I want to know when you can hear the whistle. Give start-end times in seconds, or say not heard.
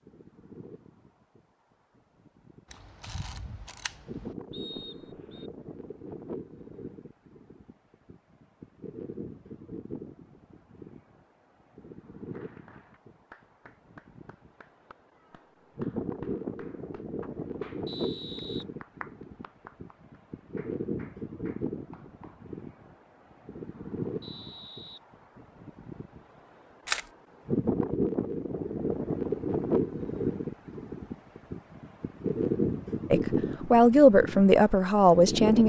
4.5-5.5, 17.9-18.6, 24.2-25.0.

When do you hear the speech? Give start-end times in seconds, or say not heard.
33.1-35.6.